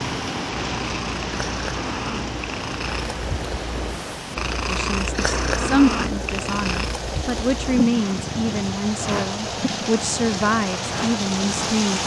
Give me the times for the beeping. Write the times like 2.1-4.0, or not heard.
not heard.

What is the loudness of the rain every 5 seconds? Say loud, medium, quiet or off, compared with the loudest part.
loud, medium, loud.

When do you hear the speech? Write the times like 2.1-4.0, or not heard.
4.7-12.0.